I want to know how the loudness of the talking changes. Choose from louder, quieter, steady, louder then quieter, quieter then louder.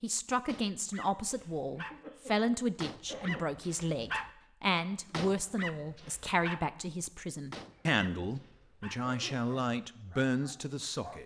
steady.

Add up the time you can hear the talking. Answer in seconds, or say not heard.
11 s.